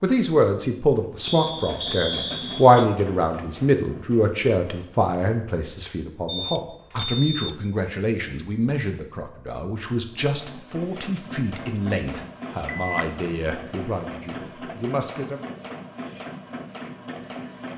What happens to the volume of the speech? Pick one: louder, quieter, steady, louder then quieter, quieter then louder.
quieter.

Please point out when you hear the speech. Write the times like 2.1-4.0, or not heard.
0.0-15.4.